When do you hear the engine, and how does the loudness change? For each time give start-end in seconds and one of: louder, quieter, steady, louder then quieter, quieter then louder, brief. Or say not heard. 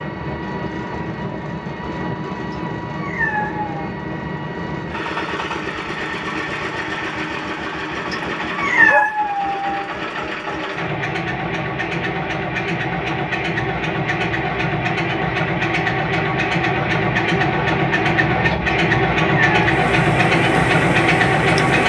0.0-21.8 louder.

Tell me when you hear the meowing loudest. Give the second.
9 s.